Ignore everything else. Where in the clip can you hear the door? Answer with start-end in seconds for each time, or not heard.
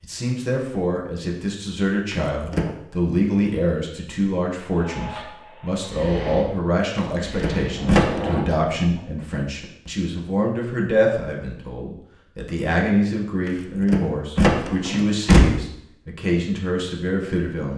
2.1-2.7, 7.0-8.2, 13.4-15.4.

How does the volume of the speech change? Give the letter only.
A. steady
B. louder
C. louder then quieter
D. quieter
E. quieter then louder
A.